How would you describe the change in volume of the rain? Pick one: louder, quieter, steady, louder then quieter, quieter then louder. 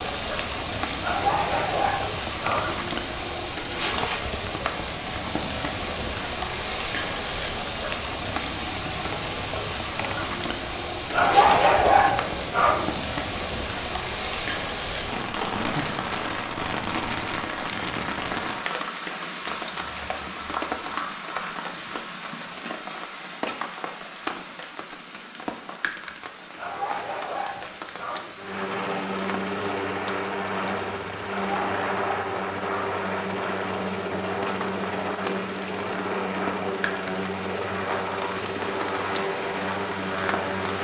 quieter.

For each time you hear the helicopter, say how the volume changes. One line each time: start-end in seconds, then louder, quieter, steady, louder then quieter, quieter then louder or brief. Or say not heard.
28.4-40.8 steady.